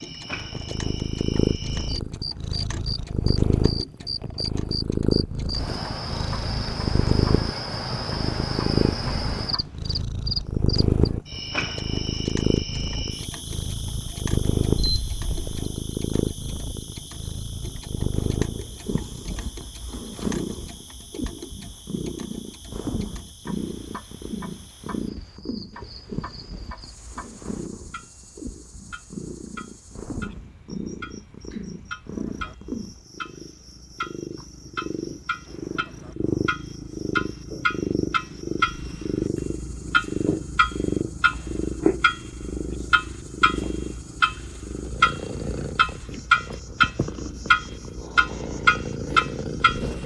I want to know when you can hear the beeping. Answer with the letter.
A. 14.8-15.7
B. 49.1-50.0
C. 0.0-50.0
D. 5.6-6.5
A.